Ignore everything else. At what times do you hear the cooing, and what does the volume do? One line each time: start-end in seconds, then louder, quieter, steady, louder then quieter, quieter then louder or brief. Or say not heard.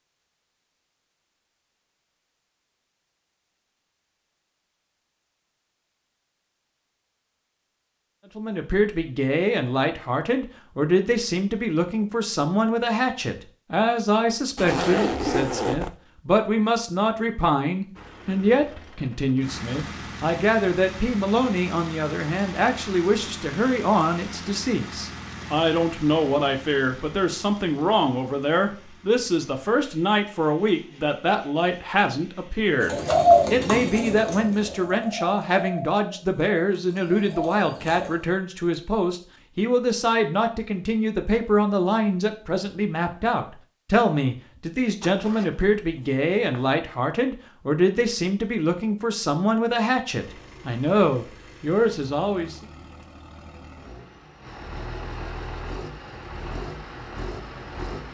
32.8-38.1 quieter then louder.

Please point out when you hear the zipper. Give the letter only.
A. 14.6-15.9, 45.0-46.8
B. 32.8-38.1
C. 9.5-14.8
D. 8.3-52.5
A.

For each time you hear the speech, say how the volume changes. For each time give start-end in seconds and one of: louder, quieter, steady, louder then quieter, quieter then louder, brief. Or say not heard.
8.3-52.5 steady.